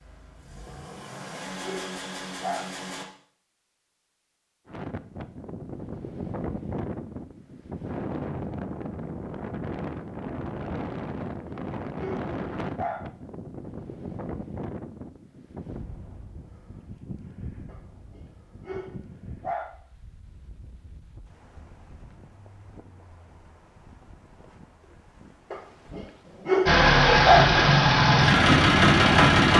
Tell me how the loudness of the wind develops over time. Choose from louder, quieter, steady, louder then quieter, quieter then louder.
quieter.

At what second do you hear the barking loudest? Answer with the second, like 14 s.
27 s.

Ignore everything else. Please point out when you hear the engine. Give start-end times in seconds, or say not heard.
0.0-3.0, 26.6-29.5.